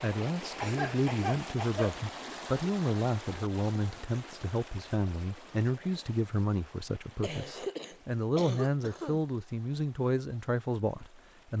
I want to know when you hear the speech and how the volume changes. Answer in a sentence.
You can hear the speech from 0.0 to 11.5 s, at a steady volume.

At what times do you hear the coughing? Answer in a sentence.
The coughing can be heard from 0.6 to 2.0 s and from 7.2 to 9.2 s.